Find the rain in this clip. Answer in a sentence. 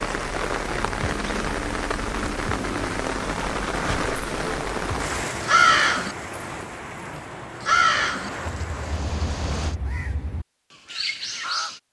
The rain can be heard from 0.0 to 9.8 s.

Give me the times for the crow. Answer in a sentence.
The crow can be heard from 4.4 to 11.8 s.